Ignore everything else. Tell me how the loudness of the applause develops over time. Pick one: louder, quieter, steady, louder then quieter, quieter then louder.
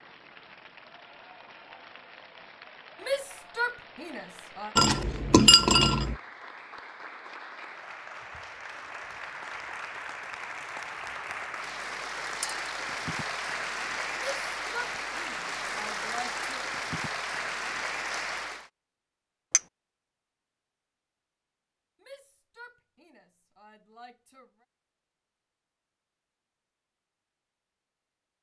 louder.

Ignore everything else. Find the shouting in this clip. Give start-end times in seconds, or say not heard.
3.0-4.8, 14.2-16.6, 22.0-24.6.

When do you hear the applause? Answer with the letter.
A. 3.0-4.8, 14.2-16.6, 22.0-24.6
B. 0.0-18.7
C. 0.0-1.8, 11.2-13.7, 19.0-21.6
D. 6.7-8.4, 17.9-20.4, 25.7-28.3
B.